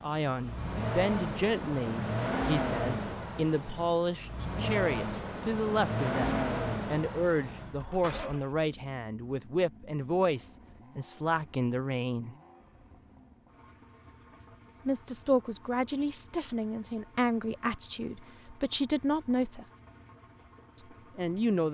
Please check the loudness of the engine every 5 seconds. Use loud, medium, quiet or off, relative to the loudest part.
loud, loud, quiet, quiet, quiet.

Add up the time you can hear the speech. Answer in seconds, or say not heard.
18 s.